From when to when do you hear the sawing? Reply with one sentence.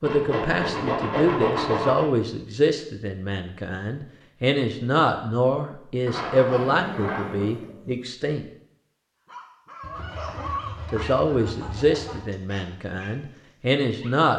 The sawing can be heard from 0.0 to 2.0 s, from 6.0 to 7.5 s and from 9.8 to 12.2 s.